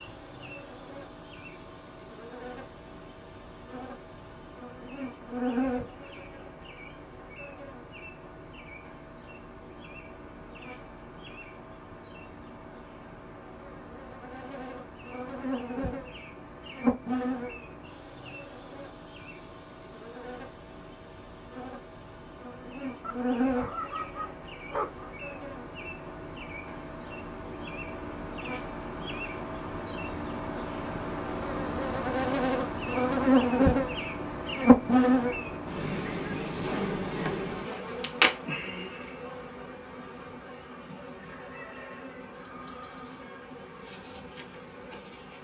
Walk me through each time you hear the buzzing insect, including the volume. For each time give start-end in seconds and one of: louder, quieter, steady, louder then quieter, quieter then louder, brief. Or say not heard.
0.0-45.3 louder then quieter.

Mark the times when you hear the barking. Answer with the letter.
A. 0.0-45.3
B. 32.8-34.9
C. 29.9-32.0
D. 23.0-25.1
D.